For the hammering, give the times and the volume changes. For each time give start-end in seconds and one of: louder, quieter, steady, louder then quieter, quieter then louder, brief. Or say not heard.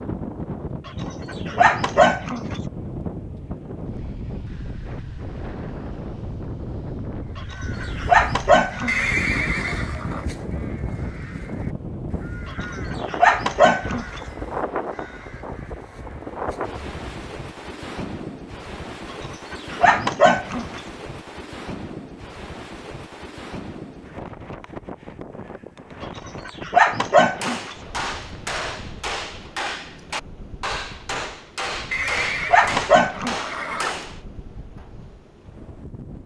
27.3-34.2 steady.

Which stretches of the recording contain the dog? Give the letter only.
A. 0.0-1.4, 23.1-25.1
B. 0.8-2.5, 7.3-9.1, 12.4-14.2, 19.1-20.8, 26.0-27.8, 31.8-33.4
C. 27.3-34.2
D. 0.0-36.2
B.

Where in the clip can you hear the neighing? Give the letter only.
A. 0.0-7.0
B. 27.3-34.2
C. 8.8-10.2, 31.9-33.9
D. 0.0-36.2
C.